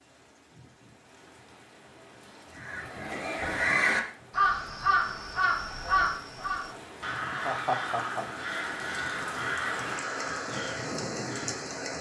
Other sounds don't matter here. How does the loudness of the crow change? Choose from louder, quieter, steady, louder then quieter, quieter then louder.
quieter.